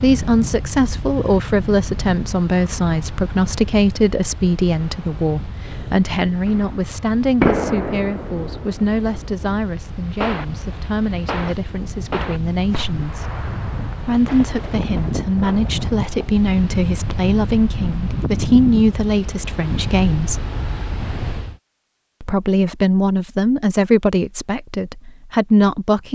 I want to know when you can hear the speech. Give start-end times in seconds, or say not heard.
0.0-13.3, 14.0-20.4, 22.2-26.1.